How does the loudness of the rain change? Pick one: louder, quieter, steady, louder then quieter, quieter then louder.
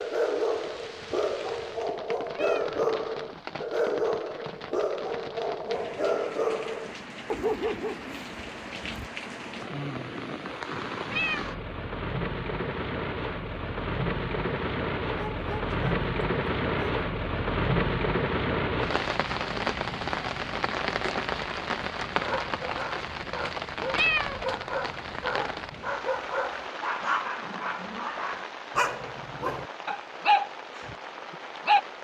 louder then quieter.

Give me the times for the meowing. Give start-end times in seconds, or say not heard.
2.3-2.7, 11.1-11.6, 23.9-24.4.